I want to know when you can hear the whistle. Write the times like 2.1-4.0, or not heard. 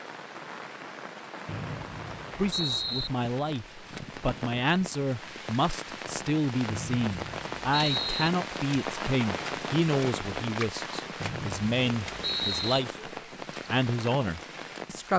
1.4-3.1, 6.7-8.3, 11.2-12.8.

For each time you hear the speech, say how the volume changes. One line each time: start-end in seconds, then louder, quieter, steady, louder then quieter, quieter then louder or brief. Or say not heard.
2.4-13.1 steady
13.7-15.1 brief.